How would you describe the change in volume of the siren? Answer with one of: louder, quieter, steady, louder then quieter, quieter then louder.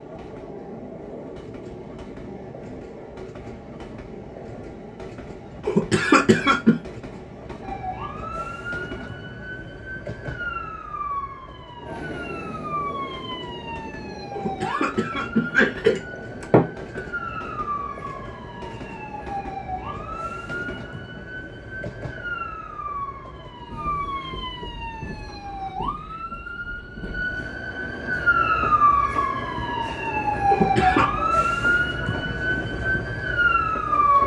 louder.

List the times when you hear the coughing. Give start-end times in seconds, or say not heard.
5.7-6.8, 14.3-17.0, 30.4-31.1.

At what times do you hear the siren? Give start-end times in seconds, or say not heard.
7.6-34.2.